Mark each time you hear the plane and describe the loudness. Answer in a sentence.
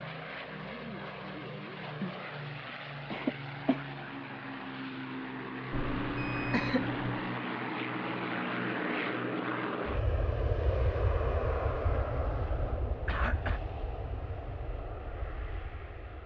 The plane can be heard from 0.0 to 16.2 s, getting louder then quieter.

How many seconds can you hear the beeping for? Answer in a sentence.
You can hear the beeping for 2 seconds altogether.